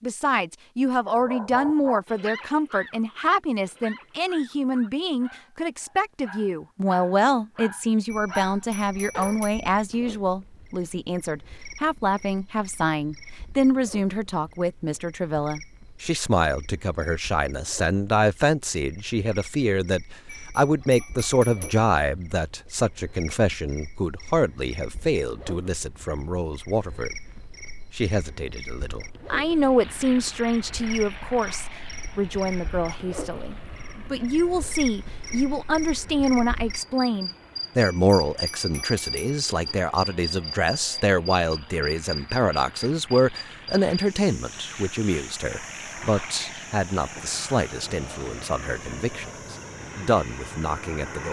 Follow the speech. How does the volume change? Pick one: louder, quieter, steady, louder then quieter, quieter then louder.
steady.